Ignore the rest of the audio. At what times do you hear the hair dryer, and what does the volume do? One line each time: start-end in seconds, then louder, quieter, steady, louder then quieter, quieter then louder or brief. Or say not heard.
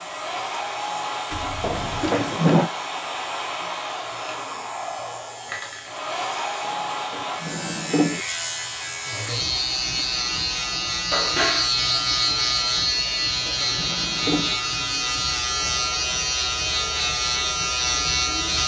0.0-18.6 quieter.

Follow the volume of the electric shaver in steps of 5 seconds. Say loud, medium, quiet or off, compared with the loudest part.
quiet, medium, loud, loud.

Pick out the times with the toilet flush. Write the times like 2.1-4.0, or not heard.
1.3-2.1, 11.1-11.7.